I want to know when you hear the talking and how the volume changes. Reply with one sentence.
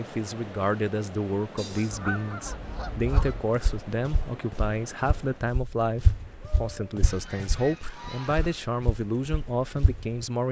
The talking can be heard from 0.0 to 10.4 s, at a steady volume.